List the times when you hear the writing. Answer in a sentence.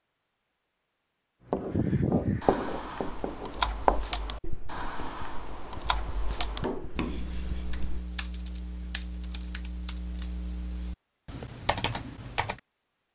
The writing can be heard from 1.5 to 8.1 s.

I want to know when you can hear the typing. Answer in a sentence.
The typing can be heard from 2.4 to 12.6 s.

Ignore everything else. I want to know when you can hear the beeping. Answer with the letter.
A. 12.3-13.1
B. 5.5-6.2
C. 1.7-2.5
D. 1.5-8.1
C.